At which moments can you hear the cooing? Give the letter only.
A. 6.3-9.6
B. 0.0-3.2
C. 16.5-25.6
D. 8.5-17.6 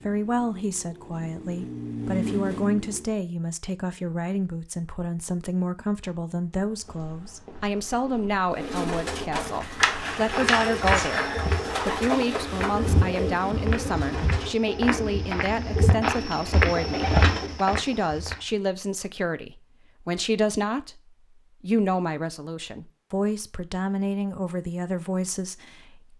D.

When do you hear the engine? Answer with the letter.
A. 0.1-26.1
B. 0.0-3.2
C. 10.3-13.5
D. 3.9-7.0
B.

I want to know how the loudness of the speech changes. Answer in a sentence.
The loudness of the speech stays about the same.